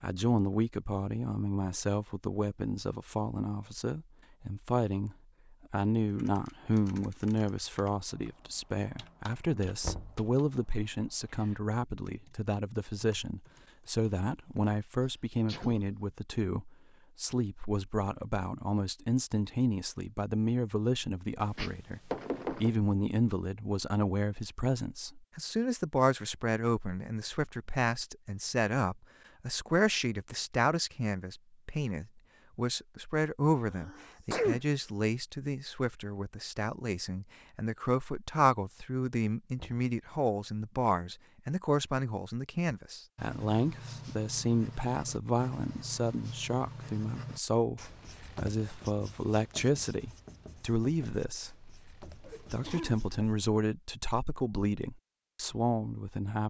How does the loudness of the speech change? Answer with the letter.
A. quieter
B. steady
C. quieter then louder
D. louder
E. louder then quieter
B.